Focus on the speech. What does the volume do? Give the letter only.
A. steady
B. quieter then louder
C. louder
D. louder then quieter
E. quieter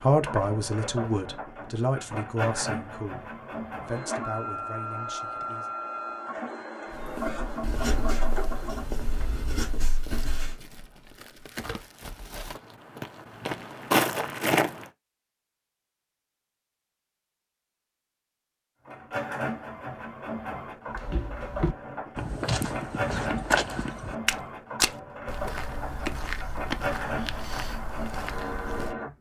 E.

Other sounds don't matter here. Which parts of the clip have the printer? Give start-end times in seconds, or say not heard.
0.0-8.9, 18.9-29.1.